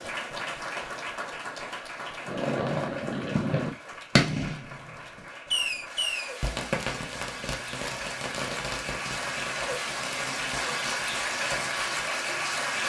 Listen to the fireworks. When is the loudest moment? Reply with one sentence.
The volume of the fireworks peaks at 4 seconds.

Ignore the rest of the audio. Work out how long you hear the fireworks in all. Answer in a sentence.
You can hear the fireworks for 10 seconds altogether.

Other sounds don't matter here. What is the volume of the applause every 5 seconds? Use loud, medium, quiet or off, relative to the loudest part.
medium, medium, loud.